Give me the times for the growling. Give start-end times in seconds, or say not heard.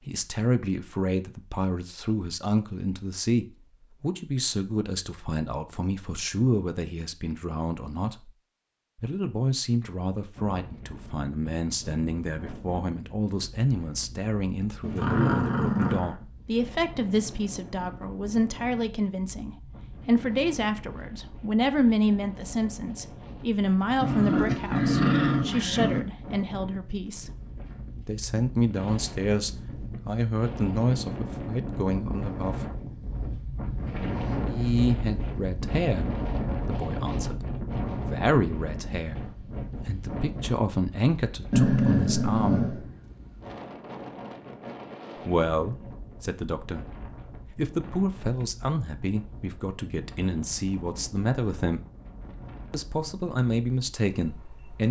14.8-16.1, 24.0-26.0, 41.5-42.8.